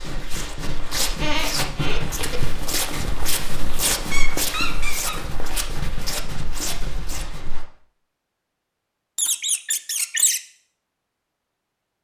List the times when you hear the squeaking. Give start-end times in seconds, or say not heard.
1.1-2.5, 4.1-5.5, 9.2-10.4.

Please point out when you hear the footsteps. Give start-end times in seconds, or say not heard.
0.0-7.7.